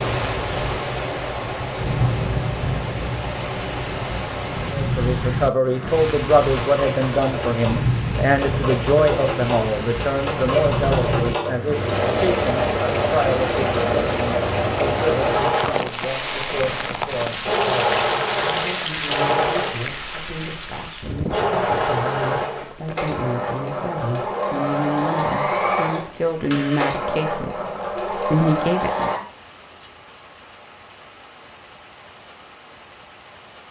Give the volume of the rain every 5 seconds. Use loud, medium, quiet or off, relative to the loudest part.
loud, loud, loud, loud, medium, quiet, quiet.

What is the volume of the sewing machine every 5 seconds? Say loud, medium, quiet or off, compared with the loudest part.
medium, medium, loud, loud, loud, loud, off.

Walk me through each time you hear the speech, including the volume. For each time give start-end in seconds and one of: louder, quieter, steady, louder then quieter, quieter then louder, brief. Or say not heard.
4.8-29.1 quieter then louder.